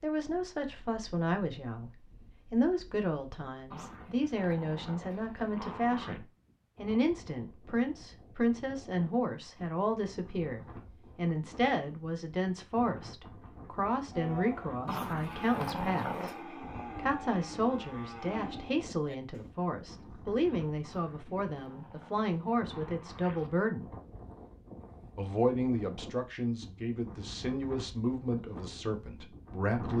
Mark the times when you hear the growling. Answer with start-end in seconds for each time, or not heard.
3.7-6.2, 14.8-16.4, 20.8-23.5.